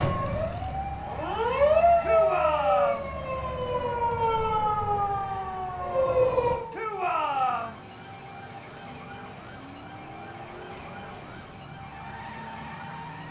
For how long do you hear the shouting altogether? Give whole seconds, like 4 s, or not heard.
2 s.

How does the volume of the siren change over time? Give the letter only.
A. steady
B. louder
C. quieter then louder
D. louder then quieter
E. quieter
E.